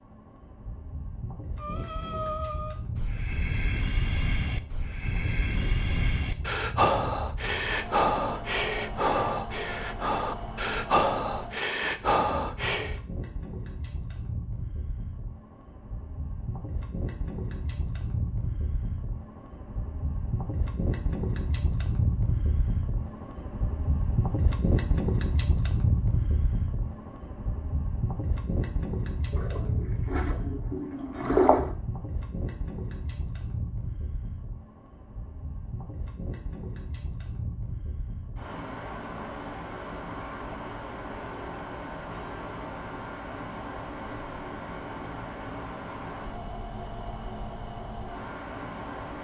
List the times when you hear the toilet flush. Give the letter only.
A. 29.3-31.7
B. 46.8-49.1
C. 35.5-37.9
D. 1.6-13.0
A.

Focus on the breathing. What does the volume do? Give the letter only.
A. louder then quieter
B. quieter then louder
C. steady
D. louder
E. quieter
D.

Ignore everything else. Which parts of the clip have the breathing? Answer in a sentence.
You can hear the breathing from 1.6 to 13.0 s.